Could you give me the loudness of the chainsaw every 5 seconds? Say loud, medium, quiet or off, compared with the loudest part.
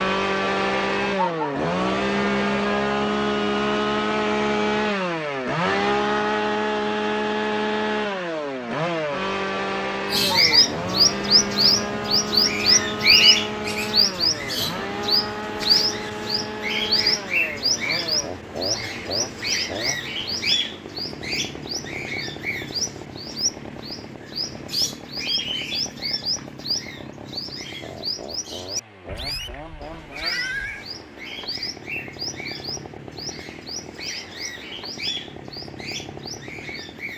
loud, loud, medium, medium, quiet, quiet, quiet, quiet.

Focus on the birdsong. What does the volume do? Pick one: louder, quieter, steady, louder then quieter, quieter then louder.
quieter.